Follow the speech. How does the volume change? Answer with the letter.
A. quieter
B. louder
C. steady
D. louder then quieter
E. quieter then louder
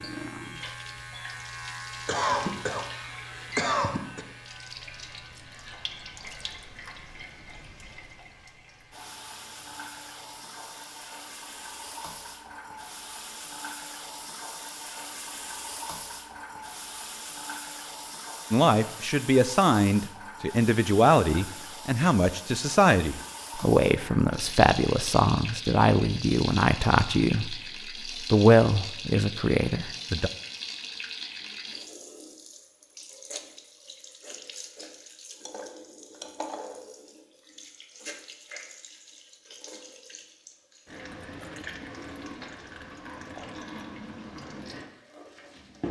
C.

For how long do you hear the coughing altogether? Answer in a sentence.
You can hear the coughing for 2 seconds altogether.